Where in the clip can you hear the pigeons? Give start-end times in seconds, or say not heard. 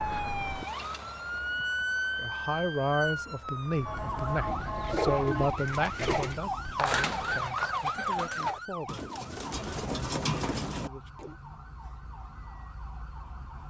4.3-11.3.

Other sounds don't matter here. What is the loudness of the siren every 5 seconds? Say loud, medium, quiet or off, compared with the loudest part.
loud, loud, quiet.